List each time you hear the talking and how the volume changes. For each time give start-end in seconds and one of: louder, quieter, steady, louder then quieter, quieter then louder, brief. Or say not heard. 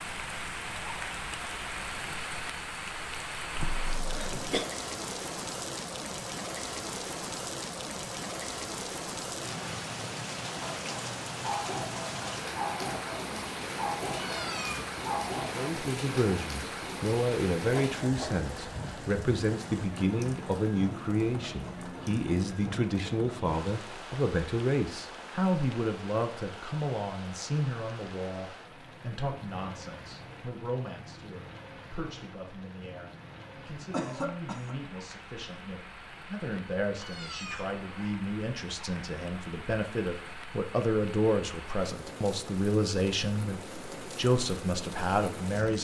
15.6-45.8 quieter then louder.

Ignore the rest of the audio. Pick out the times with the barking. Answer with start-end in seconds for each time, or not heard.
10.5-15.8.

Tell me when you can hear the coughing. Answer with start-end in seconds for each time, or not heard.
3.5-4.7, 17.7-18.3, 33.9-34.8.